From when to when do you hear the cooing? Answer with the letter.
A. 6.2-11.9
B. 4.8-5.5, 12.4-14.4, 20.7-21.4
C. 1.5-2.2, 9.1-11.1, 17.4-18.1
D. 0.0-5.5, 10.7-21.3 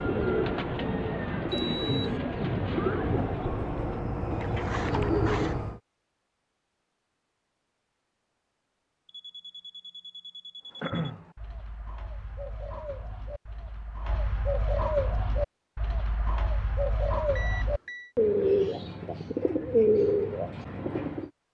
D.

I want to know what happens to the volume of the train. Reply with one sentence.
The loudness of the train goes up.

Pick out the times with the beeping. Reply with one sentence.
You can hear the beeping from 1.5 to 2.2 s, from 9.1 to 11.1 s and from 17.4 to 18.1 s.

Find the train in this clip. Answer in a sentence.
You can hear the train from 0.0 to 5.8 s.